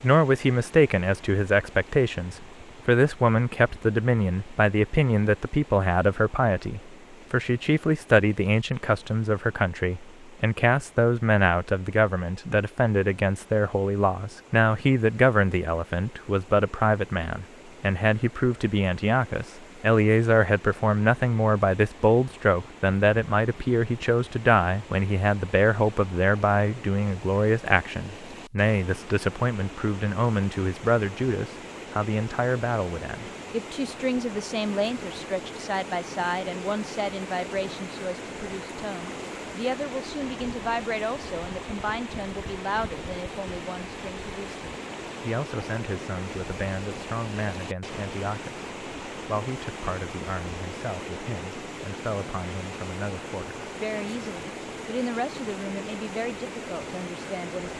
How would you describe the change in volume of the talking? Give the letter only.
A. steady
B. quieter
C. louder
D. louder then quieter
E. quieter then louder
B.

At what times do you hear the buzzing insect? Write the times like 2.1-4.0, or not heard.
not heard.